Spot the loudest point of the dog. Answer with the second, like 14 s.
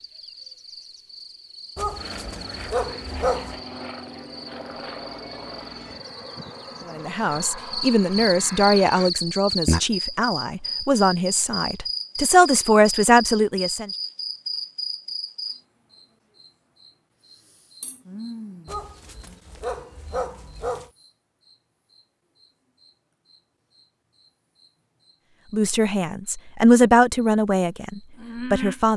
3 s.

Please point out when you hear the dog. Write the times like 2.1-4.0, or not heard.
1.8-3.6, 18.6-20.9.